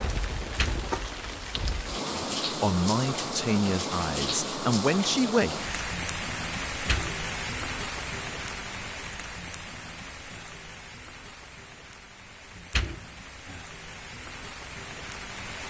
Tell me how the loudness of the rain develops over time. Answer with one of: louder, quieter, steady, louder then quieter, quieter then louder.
quieter.